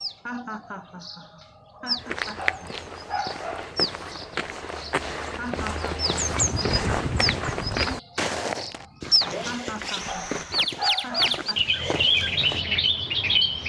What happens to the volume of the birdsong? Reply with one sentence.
The volume of the birdsong goes up.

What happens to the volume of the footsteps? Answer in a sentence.
The loudness of the footsteps goes up, then down.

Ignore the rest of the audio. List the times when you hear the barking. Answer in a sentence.
The barking can be heard from 2.4 to 3.8 s and from 10.1 to 11.4 s.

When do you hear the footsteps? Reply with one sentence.
You can hear the footsteps from 1.9 to 12.7 s.